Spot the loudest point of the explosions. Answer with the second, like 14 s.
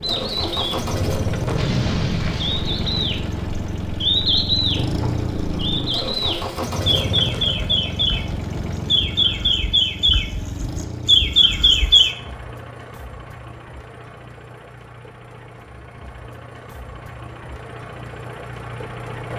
2 s.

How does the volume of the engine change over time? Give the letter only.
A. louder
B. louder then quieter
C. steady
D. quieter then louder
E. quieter
E.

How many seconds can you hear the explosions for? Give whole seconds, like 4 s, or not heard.
2 s.